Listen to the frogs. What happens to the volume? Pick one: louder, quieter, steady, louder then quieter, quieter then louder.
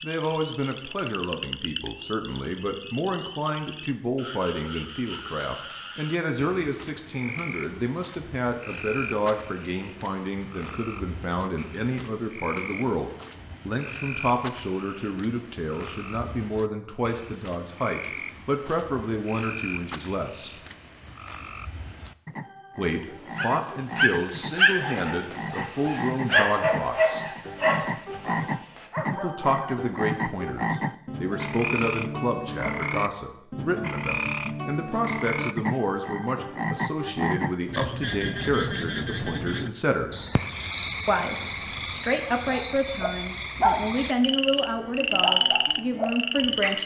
louder.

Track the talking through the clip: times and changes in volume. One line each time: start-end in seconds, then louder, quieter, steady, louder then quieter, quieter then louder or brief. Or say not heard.
0.0-20.6 steady
22.8-27.2 steady
29.1-40.2 steady
41.0-46.8 steady.